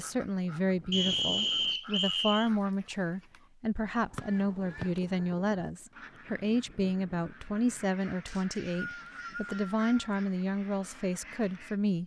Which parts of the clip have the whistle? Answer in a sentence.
You can hear the whistle from 0.9 to 2.5 s, from 4.2 to 4.8 s and from 8.2 to 10.2 s.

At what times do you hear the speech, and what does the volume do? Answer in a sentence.
You can hear the speech from 0.0 to 12.0 s, at a steady volume.